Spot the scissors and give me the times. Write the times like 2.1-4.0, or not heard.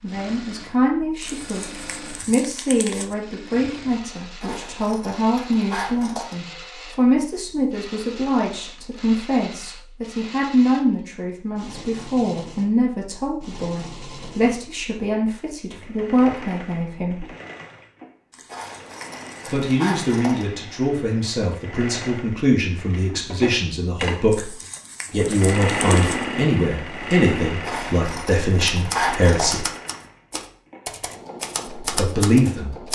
4.4-6.3, 18.5-20.4, 27.6-29.6.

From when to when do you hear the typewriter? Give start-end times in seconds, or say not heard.
28.7-32.9.